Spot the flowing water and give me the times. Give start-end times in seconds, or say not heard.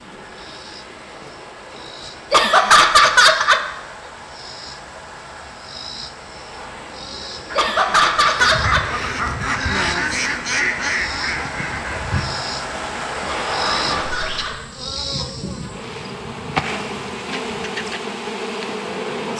0.0-14.5.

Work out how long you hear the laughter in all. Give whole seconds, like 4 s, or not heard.
4 s.